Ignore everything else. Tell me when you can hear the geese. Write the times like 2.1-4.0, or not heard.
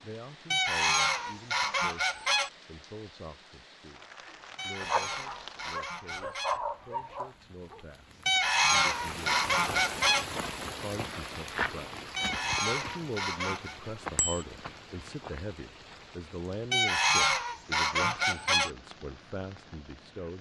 0.5-2.5, 4.5-6.6, 8.2-10.2, 12.2-13.8, 16.7-18.7.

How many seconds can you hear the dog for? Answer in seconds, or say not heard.
3 s.